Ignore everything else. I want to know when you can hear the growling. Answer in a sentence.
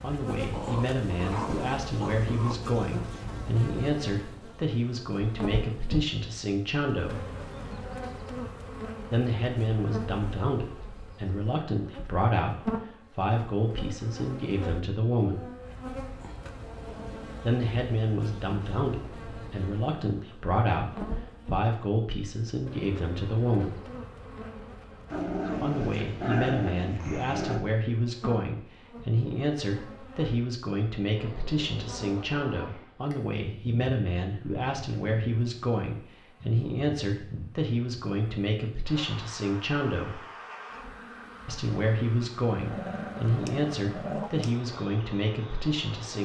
You can hear the growling from 0.5 to 2.5 s, from 25.1 to 27.6 s and from 42.5 to 44.5 s.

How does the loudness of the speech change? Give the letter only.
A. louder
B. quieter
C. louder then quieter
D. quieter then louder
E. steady
E.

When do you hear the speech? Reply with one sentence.
You can hear the speech from 0.0 to 7.2 s, from 9.1 to 15.5 s, from 17.4 to 23.8 s, from 25.6 to 40.2 s and from 41.5 to 46.2 s.